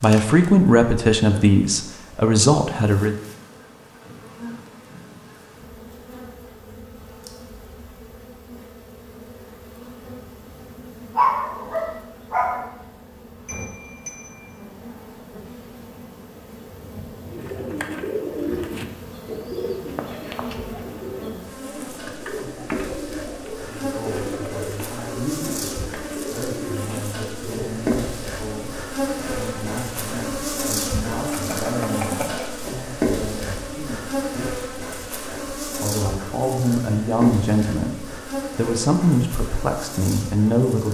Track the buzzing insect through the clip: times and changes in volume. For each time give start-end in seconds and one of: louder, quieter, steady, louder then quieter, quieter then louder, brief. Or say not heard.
0.0-40.8 louder.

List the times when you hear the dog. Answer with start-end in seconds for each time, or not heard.
11.2-12.6.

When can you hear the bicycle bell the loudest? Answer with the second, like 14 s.
32 s.